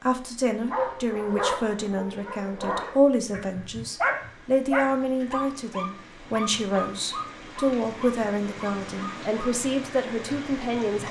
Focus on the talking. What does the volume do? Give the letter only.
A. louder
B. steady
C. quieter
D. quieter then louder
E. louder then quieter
B.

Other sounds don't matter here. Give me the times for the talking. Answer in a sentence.
The talking can be heard from 0.0 to 11.0 s.